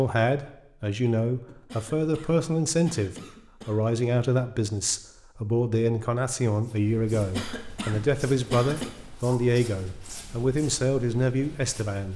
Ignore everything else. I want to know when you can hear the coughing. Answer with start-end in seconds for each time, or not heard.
1.4-3.8, 7.2-8.9.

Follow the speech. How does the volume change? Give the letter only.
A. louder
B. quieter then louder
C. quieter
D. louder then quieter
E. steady
E.